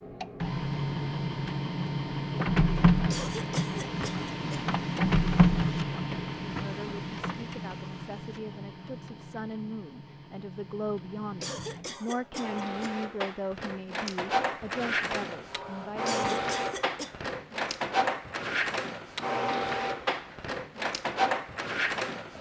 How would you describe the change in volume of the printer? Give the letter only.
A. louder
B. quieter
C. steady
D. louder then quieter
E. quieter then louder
E.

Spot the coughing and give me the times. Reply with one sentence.
You can hear the coughing from 3.1 to 4.7 s, from 11.4 to 12.9 s and from 16.1 to 17.1 s.